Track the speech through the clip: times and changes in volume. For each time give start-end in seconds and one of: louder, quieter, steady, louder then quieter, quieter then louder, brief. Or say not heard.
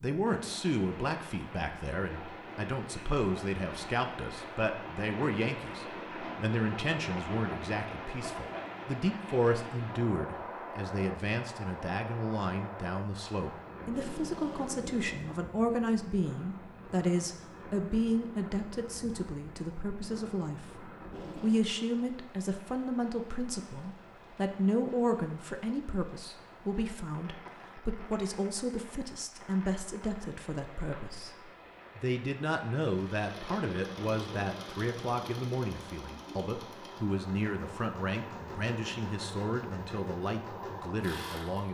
0.0-41.6 steady.